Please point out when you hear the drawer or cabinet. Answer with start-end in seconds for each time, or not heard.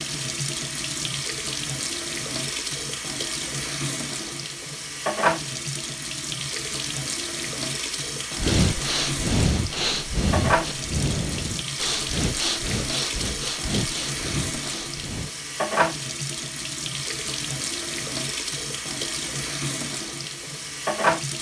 not heard.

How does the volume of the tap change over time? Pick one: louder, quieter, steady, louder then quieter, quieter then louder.
steady.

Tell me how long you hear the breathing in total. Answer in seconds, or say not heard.
7 s.